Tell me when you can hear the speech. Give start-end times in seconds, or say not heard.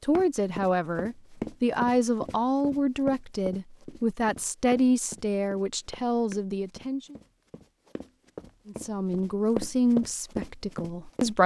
0.0-7.2, 8.7-11.4.